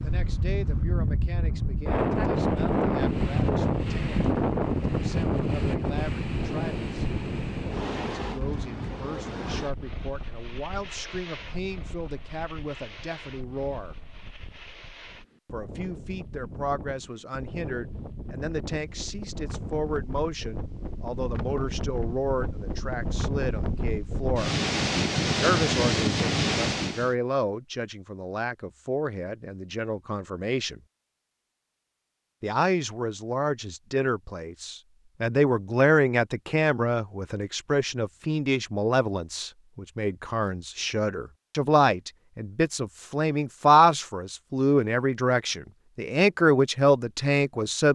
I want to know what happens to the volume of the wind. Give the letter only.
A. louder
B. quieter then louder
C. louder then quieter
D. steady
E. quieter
B.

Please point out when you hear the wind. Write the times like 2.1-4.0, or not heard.
0.0-27.1.